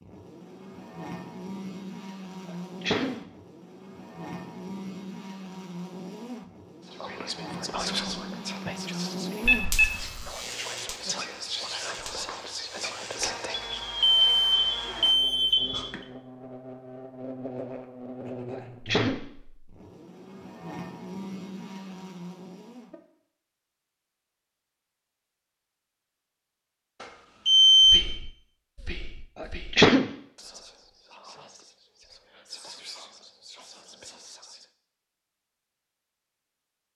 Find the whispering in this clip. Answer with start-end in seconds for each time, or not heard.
6.8-13.8, 27.8-34.6.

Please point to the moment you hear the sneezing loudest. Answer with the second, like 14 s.
30 s.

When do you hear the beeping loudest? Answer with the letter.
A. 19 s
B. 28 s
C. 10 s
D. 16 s
B.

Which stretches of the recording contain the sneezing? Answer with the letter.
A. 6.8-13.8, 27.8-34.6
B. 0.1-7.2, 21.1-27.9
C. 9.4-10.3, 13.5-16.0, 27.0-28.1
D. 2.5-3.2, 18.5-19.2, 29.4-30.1
D.